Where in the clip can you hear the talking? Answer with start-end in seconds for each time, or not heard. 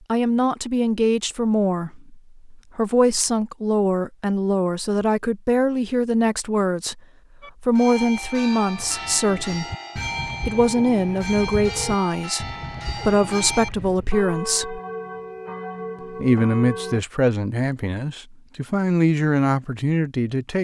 0.1-7.0, 7.6-9.7, 10.4-14.8, 16.1-20.5.